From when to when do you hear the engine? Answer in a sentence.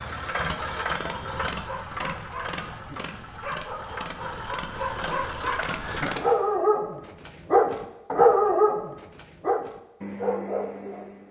The engine can be heard from 0.0 to 6.4 s.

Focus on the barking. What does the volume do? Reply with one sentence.
The volume of the barking goes up, then down.